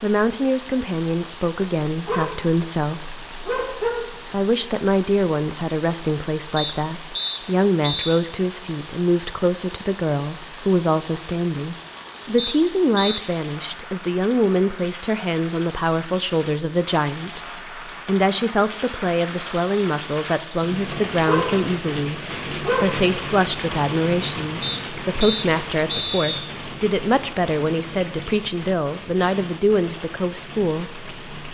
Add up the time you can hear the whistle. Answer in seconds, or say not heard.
4 s.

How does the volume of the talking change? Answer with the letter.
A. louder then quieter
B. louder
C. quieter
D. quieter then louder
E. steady
E.